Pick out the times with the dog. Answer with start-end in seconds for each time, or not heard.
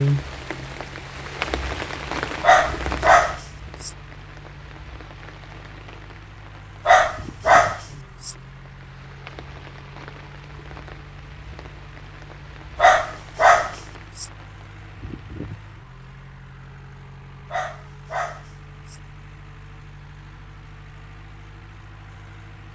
2.4-4.0, 6.8-8.3, 12.8-14.3, 17.5-19.0.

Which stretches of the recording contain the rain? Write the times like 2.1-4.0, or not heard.
0.0-15.6.